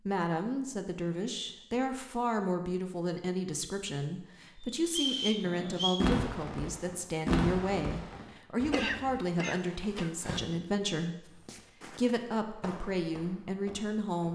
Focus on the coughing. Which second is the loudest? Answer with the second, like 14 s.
9 s.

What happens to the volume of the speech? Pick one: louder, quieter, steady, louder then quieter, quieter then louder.
steady.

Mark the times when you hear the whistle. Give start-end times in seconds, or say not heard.
4.8-6.0.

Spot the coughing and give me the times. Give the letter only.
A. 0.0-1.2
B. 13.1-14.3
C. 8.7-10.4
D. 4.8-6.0
C.